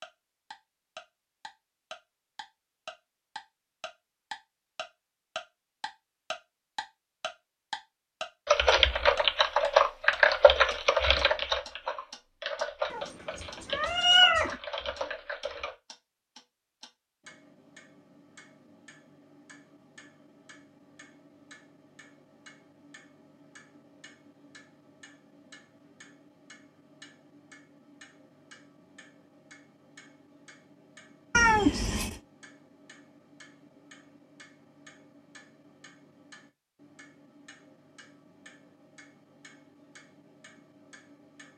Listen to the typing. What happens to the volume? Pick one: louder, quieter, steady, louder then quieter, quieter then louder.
quieter.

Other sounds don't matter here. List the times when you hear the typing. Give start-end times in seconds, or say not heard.
8.4-15.8.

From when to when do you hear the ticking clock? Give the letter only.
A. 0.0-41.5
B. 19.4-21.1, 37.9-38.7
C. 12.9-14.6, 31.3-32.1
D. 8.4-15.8
A.